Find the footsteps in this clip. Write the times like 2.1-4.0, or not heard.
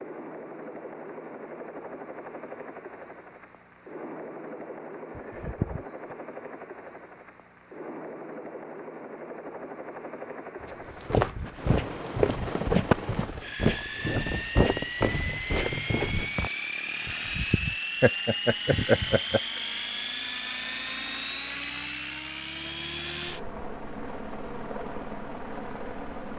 10.7-16.5.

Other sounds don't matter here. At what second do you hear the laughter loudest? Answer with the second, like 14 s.
19 s.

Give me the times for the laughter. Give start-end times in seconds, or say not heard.
5.2-6.2, 17.1-19.4.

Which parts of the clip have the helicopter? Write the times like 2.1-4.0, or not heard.
0.0-26.3.